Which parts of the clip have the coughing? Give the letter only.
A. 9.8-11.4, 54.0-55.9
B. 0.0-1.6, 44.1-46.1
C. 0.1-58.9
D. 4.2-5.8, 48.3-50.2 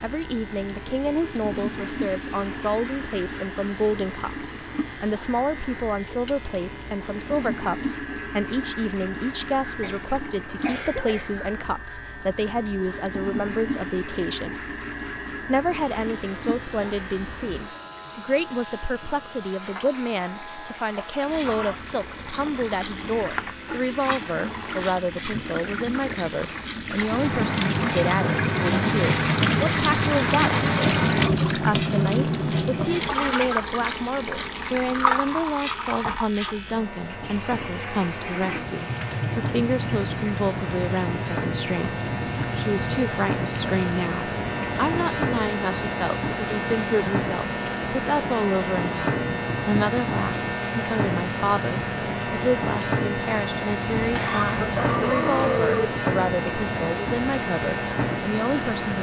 A.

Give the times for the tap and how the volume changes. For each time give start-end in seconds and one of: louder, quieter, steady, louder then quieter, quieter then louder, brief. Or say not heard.
0.1-58.9 louder then quieter.